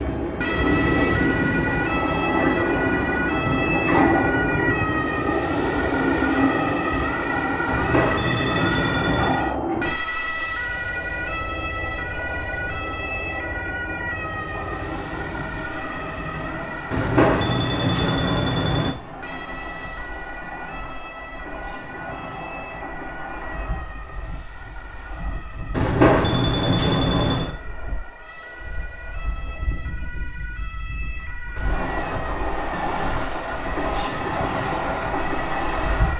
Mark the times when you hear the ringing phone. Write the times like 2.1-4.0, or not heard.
7.7-9.4, 16.9-18.9, 25.7-27.6.